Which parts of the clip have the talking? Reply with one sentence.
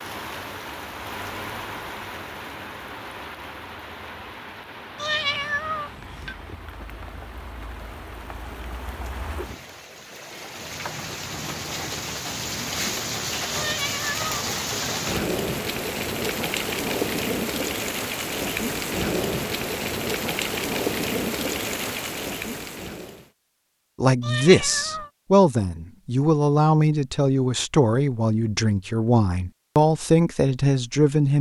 The talking can be heard from 24.0 to 31.3 s.